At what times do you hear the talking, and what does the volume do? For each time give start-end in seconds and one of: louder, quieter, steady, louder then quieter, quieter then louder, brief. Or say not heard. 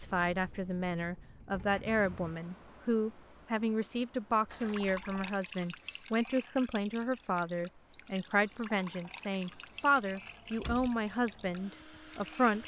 0.0-12.6 steady.